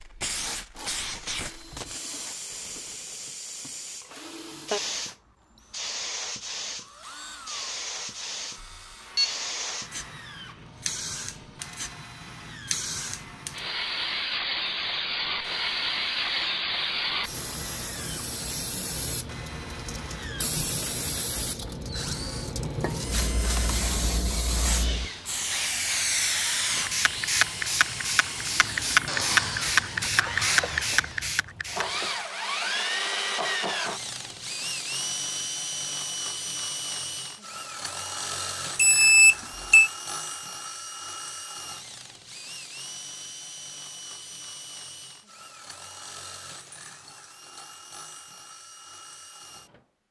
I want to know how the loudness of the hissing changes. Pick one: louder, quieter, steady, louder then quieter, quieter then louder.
louder.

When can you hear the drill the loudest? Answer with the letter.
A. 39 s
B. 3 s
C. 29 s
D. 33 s
D.